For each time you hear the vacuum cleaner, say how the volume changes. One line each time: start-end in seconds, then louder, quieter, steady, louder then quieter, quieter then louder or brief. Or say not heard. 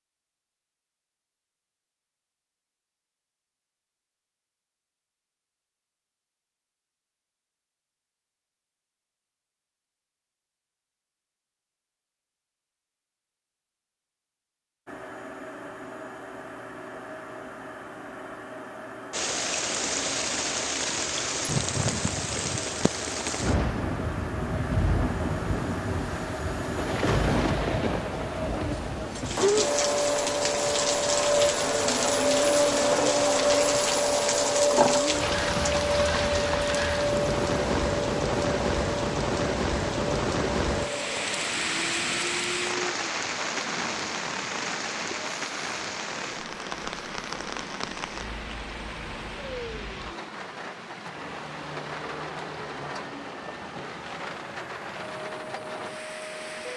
14.8-56.7 louder then quieter.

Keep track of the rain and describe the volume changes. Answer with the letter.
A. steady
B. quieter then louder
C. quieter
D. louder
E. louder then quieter
C.